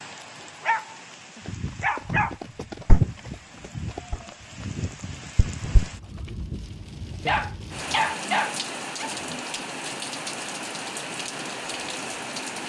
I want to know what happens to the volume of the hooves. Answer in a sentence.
The loudness of the hooves goes up, then down.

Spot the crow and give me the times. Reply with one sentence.
The crow can't be heard in this clip.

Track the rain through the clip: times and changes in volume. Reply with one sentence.
You can hear the rain from 0.0 to 12.6 s, getting louder.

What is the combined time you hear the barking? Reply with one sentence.
You can hear the barking for 4 seconds altogether.